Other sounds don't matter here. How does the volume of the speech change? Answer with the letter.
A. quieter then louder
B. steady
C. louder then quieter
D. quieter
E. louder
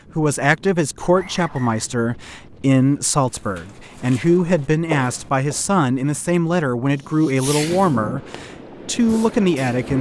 B.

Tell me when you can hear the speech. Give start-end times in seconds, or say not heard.
0.1-9.9.